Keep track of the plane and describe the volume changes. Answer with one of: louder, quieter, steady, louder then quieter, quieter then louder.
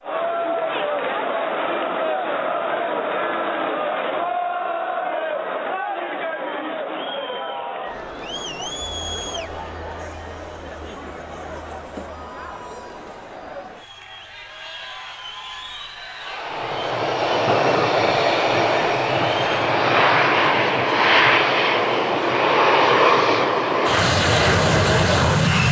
steady.